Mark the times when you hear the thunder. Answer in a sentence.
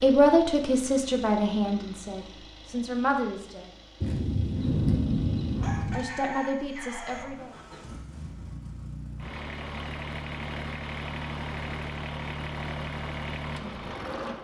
You can hear the thunder from 4.0 to 6.0 s.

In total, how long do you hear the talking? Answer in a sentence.
You can hear the talking for 5 seconds altogether.